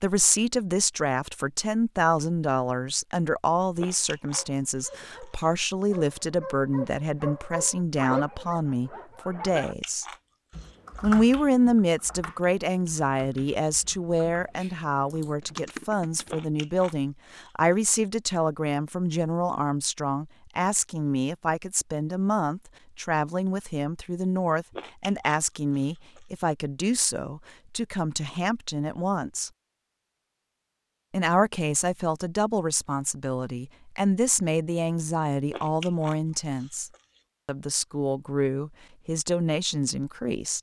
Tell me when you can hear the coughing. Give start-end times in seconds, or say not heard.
not heard.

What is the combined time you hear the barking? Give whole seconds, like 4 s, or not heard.
6 s.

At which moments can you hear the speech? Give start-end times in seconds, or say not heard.
0.0-10.1, 11.0-29.5, 31.1-40.5.